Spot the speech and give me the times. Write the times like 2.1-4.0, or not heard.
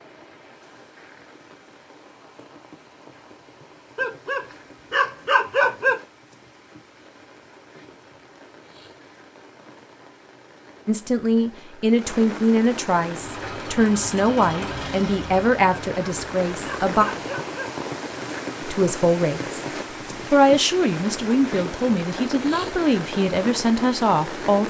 10.8-17.1, 18.6-19.6, 20.2-24.6.